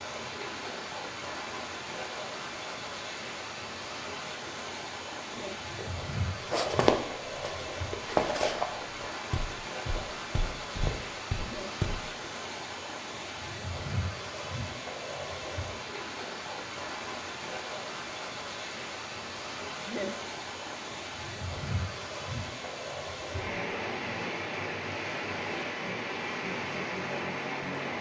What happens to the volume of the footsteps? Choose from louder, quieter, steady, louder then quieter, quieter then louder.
quieter then louder.